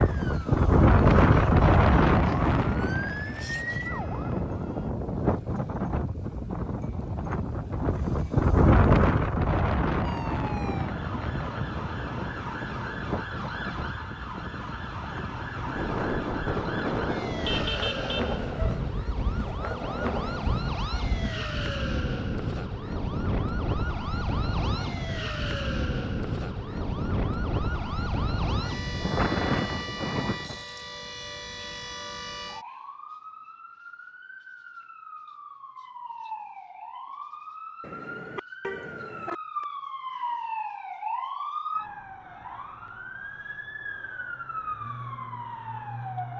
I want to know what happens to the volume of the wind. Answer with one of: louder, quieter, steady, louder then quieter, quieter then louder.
quieter.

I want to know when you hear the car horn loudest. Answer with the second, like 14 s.
18 s.